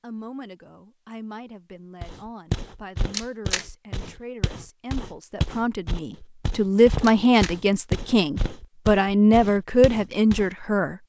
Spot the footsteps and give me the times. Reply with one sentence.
The footsteps can be heard from 2.0 to 10.4 s.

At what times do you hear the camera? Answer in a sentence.
You can hear the camera from 3.1 to 3.6 s and from 7.0 to 7.5 s.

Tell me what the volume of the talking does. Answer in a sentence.
The loudness of the talking goes up.